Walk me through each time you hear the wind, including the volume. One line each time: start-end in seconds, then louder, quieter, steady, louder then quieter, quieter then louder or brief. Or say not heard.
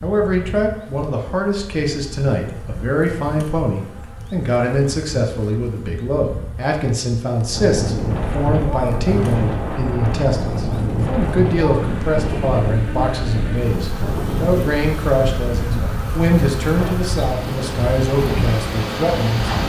7.5-19.6 steady.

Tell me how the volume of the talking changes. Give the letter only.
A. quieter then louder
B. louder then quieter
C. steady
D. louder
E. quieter
C.